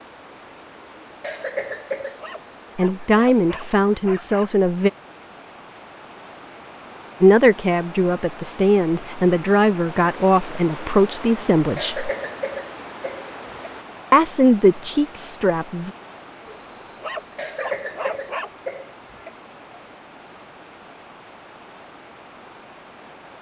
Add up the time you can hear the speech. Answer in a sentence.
You can hear the speech for 9 seconds altogether.